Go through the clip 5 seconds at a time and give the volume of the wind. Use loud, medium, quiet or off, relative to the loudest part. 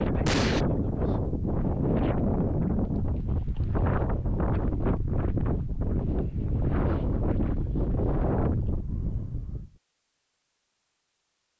loud, loud, off.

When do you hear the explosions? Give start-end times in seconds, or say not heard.
0.2-0.7.